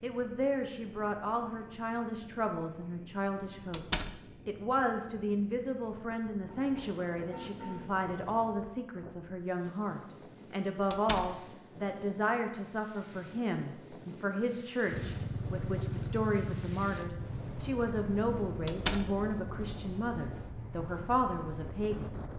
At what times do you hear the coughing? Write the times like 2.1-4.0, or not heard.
not heard.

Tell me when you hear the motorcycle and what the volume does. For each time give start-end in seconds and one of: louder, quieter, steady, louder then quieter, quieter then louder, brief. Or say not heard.
14.8-19.1 quieter.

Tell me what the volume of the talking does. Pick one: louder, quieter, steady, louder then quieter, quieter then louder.
steady.